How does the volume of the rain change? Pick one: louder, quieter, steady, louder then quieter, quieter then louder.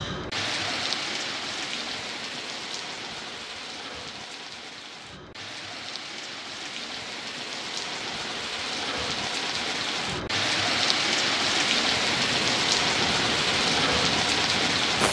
quieter then louder.